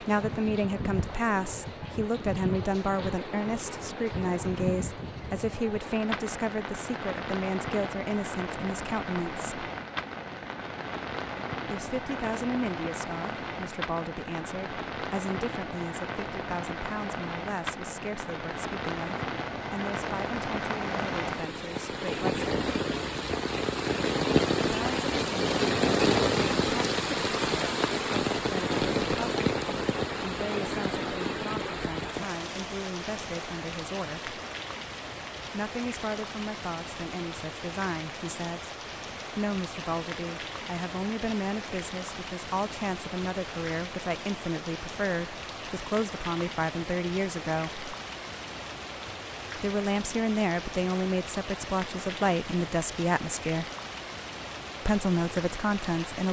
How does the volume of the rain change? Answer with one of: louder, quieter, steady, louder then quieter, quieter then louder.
louder then quieter.